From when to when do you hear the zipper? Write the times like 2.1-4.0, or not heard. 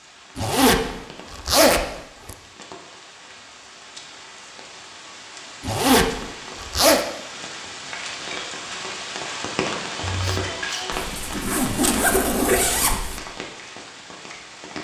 0.3-2.4, 5.6-7.0, 11.0-13.2.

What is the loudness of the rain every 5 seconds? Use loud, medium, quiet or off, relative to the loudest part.
medium, loud, loud.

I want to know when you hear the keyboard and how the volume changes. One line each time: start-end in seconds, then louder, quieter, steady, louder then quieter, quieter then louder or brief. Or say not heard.
not heard.